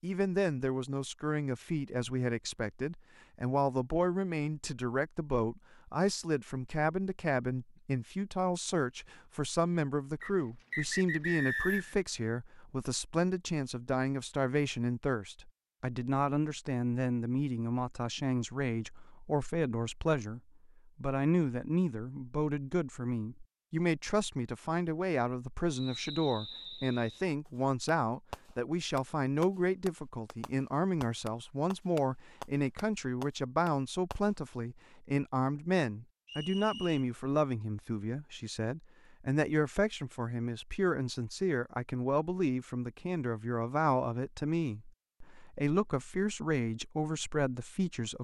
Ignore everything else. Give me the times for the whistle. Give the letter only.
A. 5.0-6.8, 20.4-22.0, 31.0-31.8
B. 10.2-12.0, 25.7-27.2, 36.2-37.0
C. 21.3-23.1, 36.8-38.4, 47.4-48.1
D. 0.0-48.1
B.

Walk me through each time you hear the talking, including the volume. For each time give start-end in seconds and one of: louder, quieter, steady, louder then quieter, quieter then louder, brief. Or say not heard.
0.0-48.1 steady.